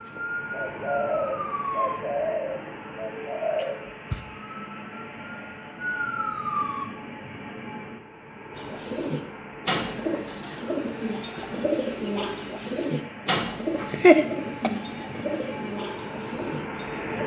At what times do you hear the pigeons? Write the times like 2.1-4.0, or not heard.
0.1-4.2, 8.6-17.2.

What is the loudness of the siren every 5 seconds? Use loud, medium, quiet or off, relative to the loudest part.
loud, loud, off, off.